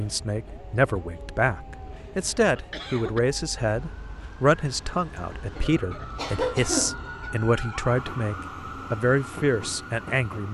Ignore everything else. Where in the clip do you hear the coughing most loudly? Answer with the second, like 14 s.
7 s.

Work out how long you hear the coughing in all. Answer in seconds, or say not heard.
3 s.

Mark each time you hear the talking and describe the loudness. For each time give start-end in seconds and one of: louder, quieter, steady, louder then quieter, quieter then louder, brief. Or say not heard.
0.0-10.4 steady.